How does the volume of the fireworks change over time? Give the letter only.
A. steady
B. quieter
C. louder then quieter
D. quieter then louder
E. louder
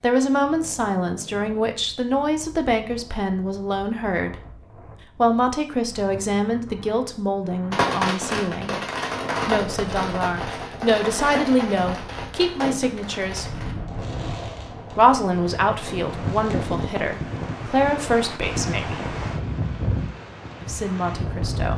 B.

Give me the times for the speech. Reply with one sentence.
You can hear the speech from 0.0 to 4.4 s, from 5.2 to 8.8 s, from 9.4 to 13.5 s, from 14.9 to 19.2 s and from 20.6 to 21.7 s.